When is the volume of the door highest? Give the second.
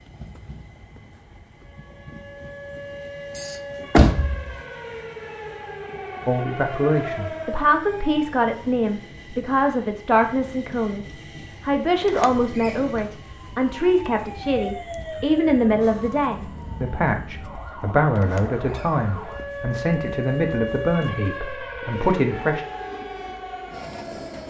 4 s.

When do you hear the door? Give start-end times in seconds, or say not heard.
3.4-4.5, 12.0-12.9, 18.1-19.4.